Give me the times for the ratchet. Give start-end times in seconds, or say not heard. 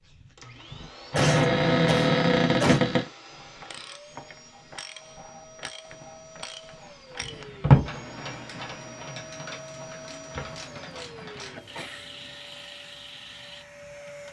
3.4-13.7.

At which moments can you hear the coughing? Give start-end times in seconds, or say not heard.
1.1-2.8, 10.5-12.3.